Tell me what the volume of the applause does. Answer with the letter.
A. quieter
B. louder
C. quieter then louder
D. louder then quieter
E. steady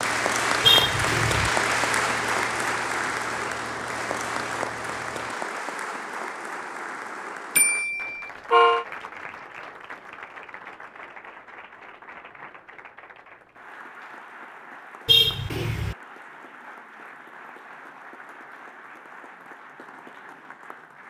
A.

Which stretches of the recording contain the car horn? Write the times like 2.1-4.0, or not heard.
0.6-1.5, 7.5-8.8, 15.1-15.9.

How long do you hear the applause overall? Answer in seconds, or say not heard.
21 s.